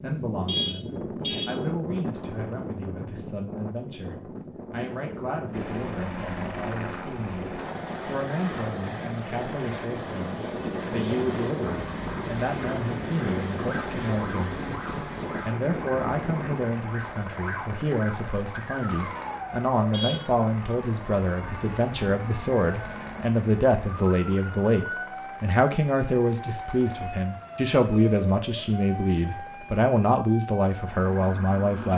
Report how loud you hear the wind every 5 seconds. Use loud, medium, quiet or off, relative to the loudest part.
loud, medium, loud, loud, off, off, off.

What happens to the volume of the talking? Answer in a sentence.
The volume of the talking goes up.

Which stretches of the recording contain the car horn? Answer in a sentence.
You can hear the car horn from 0.5 to 1.6 s and from 19.9 to 20.3 s.